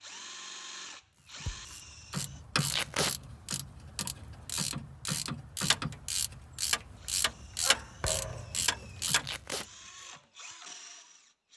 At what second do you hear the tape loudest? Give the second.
3 s.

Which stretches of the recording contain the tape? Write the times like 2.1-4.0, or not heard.
2.7-3.1, 9.2-9.7.